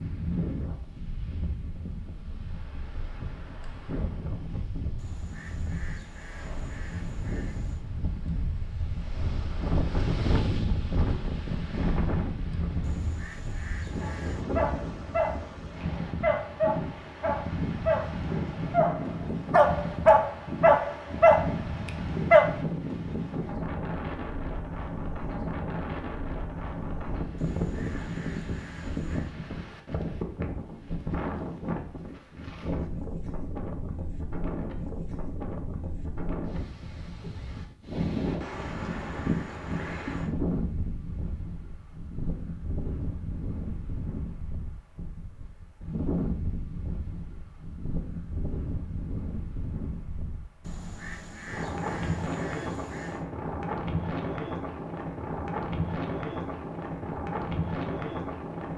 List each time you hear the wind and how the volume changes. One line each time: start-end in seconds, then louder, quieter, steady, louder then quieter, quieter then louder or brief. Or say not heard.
0.0-58.7 steady.